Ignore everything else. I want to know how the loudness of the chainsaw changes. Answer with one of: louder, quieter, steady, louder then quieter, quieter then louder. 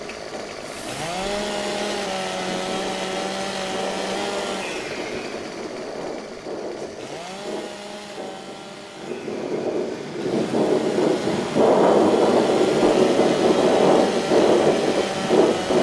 quieter then louder.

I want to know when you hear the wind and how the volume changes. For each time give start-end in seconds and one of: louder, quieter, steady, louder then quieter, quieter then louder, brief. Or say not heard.
0.0-15.7 louder.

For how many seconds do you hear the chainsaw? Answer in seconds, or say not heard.
16 s.